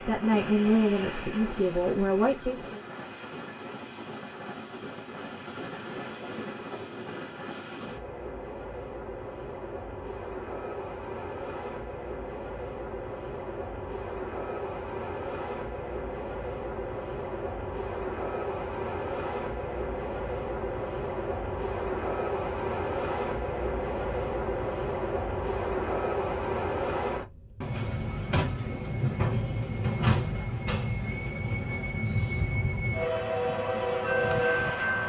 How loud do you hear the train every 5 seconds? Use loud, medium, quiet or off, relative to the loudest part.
medium, medium, medium, medium, loud, loud, loud.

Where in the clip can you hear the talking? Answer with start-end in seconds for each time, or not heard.
0.1-2.8.